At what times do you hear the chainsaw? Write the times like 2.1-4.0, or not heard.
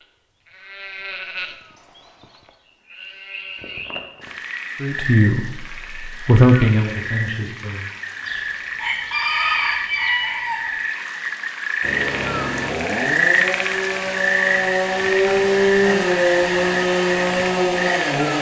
11.8-18.3.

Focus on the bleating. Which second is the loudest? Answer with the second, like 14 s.
1 s.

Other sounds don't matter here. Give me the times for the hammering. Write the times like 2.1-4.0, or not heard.
not heard.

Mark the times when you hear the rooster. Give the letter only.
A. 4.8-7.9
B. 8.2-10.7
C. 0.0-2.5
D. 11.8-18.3
B.